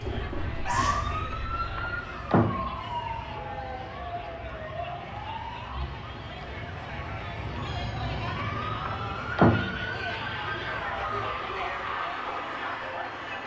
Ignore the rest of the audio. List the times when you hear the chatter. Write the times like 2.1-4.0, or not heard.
0.0-13.4.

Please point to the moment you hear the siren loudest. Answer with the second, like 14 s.
1 s.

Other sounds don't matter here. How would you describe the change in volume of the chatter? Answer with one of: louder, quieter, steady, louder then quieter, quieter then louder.
louder.